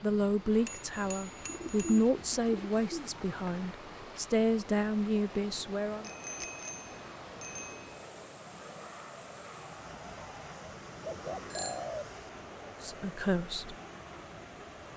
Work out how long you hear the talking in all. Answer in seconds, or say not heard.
7 s.